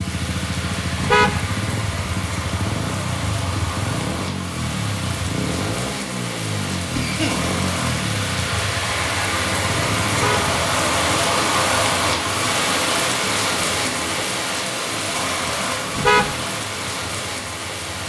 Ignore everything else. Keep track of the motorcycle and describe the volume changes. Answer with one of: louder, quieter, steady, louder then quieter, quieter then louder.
quieter.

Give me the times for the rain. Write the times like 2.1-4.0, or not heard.
0.0-18.0.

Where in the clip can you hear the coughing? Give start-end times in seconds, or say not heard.
7.0-7.4.